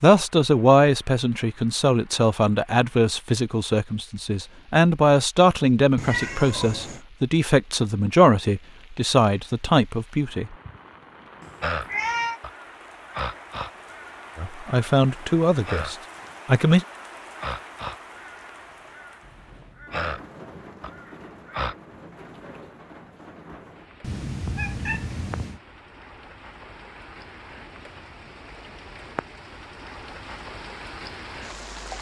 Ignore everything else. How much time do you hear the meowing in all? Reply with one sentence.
You can hear the meowing for 4 seconds altogether.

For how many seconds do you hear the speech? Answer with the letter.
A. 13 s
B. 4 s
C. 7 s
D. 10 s
A.